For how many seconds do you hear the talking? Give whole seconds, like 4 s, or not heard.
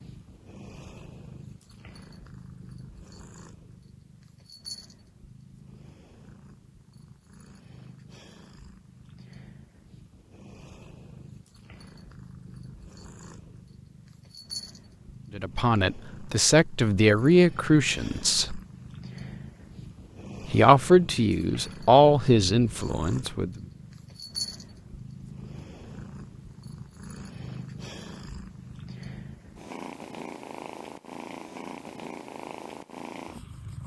6 s.